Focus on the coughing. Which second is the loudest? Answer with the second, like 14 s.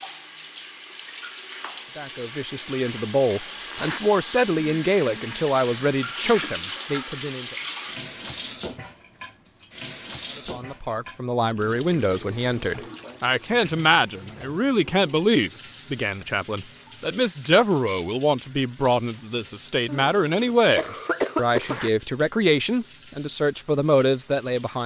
21 s.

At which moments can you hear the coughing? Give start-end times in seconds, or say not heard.
19.9-21.9.